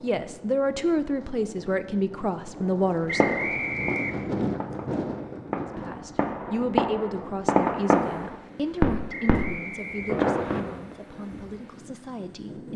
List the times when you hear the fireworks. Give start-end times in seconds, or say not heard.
2.6-10.9.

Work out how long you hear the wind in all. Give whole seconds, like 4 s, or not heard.
13 s.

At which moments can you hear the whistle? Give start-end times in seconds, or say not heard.
3.0-4.3, 9.1-10.6.